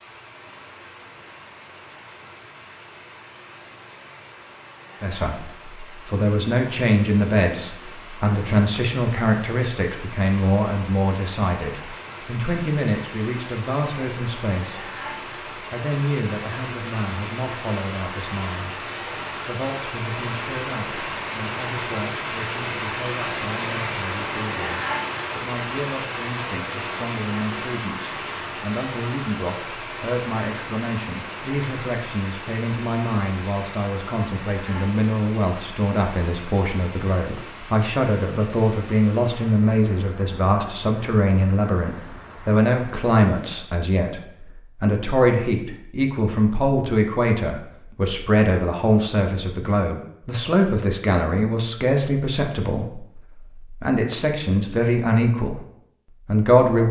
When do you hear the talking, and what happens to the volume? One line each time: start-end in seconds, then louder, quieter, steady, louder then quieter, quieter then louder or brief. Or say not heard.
5.0-56.8 quieter then louder.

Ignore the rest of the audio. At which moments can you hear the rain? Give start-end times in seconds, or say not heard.
0.0-43.5.